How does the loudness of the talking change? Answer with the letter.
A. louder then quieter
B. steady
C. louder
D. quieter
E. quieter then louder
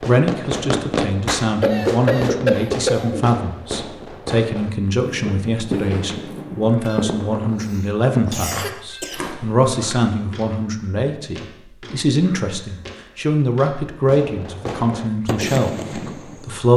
B.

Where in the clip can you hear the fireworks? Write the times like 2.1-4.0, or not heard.
0.0-8.4, 14.0-16.7.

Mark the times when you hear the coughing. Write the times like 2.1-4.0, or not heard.
1.6-3.3, 6.8-9.3, 12.1-13.3.